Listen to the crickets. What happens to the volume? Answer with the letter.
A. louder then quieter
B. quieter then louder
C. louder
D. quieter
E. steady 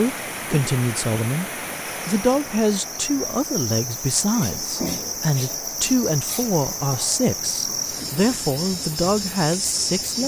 C.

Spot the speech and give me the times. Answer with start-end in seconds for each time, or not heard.
0.0-10.2.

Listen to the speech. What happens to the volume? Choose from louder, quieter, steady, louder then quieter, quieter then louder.
steady.